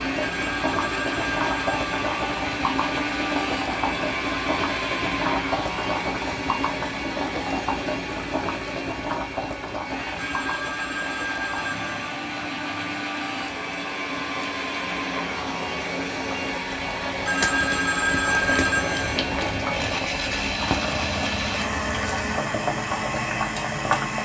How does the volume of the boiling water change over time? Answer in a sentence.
The volume of the boiling water goes down, then up.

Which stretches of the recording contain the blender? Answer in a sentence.
The blender can be heard from 0.0 to 24.2 s.